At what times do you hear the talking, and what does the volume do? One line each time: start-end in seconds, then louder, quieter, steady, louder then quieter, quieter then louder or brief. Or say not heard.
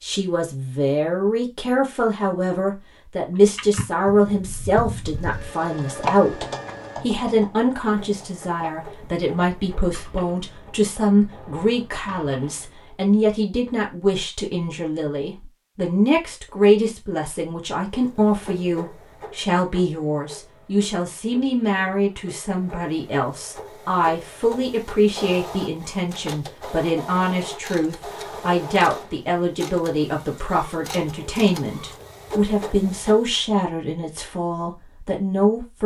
0.0-35.8 steady.